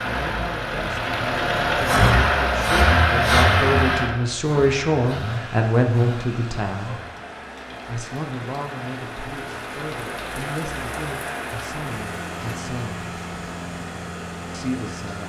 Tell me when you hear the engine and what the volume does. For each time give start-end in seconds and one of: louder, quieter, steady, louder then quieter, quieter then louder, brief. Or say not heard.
0.0-15.2 quieter.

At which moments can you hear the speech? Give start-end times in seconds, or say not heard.
0.1-7.0, 7.8-13.1, 14.5-15.2.